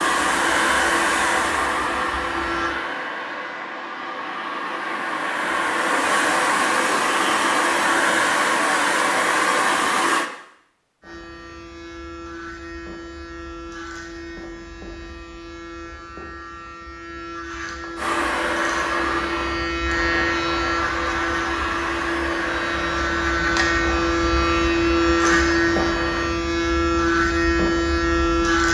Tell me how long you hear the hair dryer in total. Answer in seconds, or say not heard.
19 s.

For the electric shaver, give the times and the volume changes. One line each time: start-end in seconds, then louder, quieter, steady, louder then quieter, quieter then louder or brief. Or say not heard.
0.0-2.8 brief
11.0-28.6 louder.